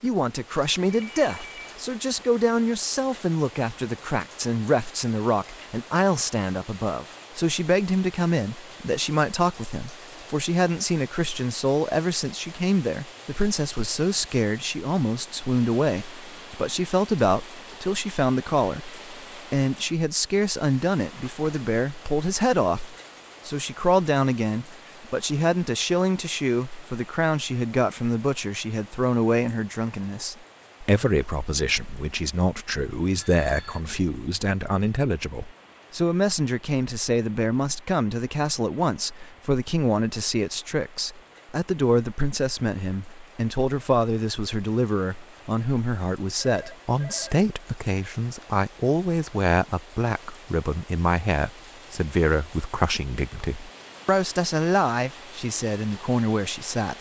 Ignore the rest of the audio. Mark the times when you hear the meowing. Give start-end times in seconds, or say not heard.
not heard.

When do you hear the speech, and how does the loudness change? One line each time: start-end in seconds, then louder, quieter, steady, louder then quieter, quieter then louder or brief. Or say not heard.
0.0-56.9 steady.